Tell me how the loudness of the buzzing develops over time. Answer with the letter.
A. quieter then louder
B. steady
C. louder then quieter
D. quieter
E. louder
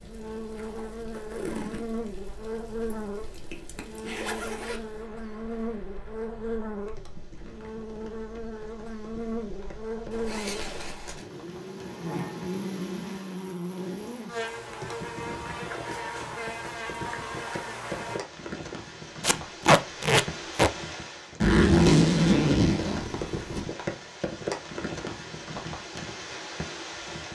B.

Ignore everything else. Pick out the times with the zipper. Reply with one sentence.
You can hear the zipper from 2.9 to 4.8 s, from 10.1 to 11.2 s and from 21.4 to 23.6 s.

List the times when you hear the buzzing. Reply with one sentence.
You can hear the buzzing from 0.0 to 18.2 s.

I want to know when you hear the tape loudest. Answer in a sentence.
The loudest moment of the tape is at 20 seconds.